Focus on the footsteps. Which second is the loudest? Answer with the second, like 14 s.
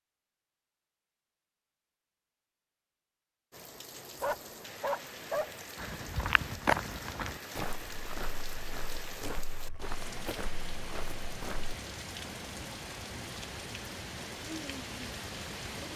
7 s.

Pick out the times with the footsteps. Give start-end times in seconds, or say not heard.
5.8-11.8.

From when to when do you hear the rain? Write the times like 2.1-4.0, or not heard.
3.5-15.9.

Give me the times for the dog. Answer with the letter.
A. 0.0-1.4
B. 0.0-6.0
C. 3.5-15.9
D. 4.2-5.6
D.